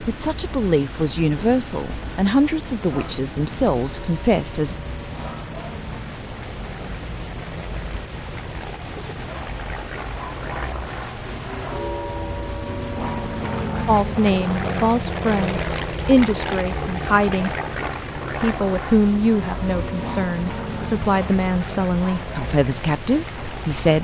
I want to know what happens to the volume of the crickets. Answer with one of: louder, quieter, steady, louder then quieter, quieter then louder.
steady.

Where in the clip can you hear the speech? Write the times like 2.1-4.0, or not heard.
0.0-4.8, 13.8-17.6, 18.4-23.9.